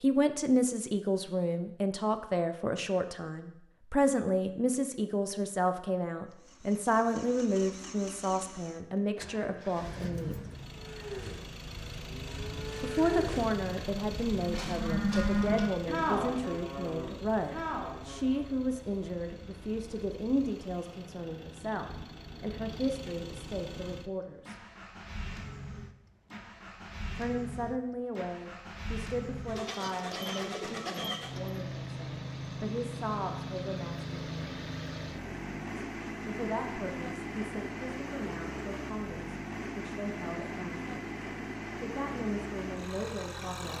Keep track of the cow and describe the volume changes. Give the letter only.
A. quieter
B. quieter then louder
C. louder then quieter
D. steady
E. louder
C.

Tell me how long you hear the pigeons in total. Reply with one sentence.
The pigeons can be heard for 2 seconds in total.